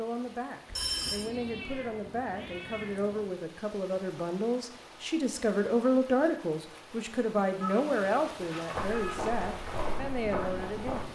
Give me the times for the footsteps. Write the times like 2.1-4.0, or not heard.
8.7-11.0.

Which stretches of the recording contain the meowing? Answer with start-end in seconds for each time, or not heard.
1.0-3.2, 7.6-9.3.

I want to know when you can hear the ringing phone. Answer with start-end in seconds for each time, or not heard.
0.7-1.3.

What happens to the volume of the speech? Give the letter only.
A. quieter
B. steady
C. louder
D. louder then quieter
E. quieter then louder
D.